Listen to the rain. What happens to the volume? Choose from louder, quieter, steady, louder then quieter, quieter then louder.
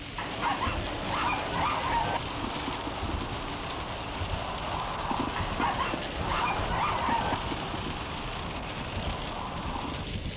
steady.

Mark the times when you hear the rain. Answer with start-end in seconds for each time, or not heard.
0.0-10.3.